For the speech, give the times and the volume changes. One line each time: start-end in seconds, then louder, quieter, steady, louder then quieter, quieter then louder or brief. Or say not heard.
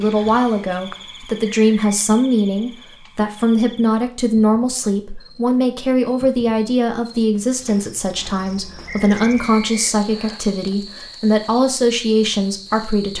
0.0-13.1 steady.